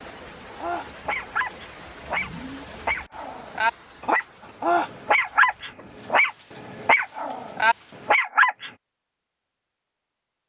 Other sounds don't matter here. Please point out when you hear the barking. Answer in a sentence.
The barking can be heard from 0.6 to 8.7 s.